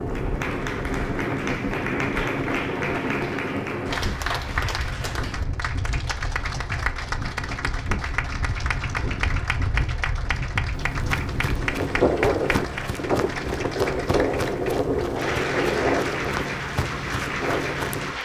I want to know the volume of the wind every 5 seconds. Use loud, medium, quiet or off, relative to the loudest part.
loud, medium, loud, loud.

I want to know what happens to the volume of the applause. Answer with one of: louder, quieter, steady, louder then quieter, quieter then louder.
steady.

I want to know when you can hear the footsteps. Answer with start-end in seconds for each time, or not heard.
10.7-18.1.